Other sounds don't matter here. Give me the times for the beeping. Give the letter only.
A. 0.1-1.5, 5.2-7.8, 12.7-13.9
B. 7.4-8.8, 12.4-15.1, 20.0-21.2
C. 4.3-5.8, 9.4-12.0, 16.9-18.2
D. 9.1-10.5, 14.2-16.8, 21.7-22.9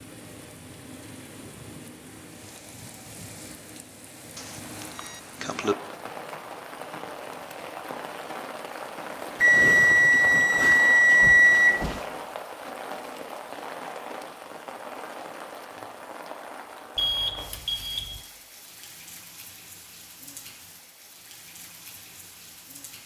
C.